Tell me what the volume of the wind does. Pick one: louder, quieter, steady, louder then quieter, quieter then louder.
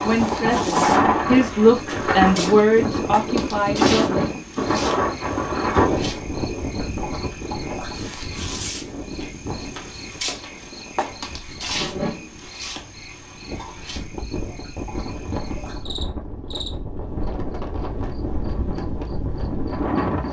quieter then louder.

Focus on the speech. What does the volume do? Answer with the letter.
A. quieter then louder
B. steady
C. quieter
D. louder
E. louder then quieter
E.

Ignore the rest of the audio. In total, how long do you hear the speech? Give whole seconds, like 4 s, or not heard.
4 s.